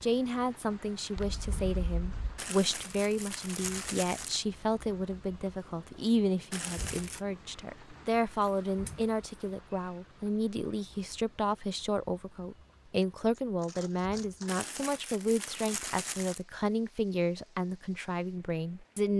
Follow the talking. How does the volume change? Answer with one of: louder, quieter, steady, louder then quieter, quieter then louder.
steady.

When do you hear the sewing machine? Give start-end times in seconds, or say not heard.
not heard.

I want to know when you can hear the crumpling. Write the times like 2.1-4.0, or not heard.
2.4-4.4, 6.5-7.2, 14.4-16.4.